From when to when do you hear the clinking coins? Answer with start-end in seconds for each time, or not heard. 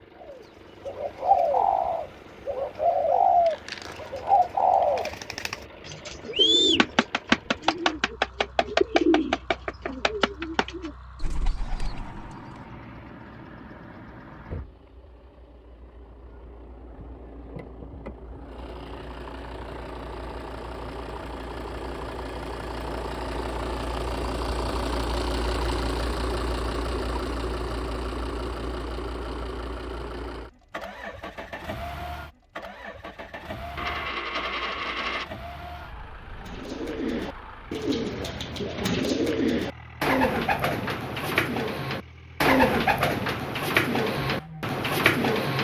3.5-5.1, 33.8-35.3.